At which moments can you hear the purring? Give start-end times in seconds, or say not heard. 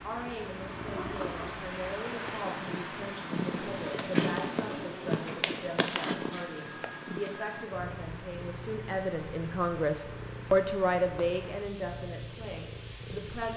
0.0-13.5.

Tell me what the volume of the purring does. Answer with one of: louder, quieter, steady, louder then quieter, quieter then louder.
louder then quieter.